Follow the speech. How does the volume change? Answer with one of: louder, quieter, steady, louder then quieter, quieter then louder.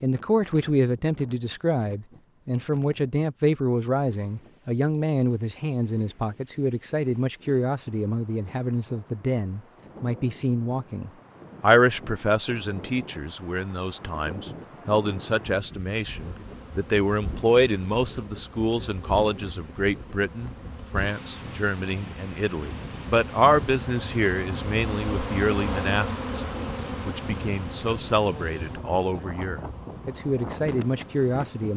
steady.